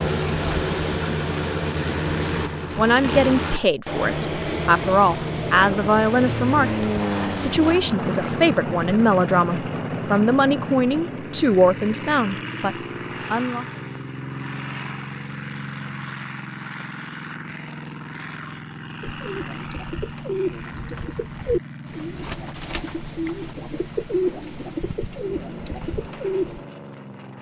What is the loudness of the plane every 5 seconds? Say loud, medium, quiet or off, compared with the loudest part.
loud, loud, medium, medium, quiet, quiet.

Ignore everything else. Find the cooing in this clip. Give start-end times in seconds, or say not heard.
19.0-26.6.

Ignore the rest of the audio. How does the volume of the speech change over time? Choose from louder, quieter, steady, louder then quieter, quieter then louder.
steady.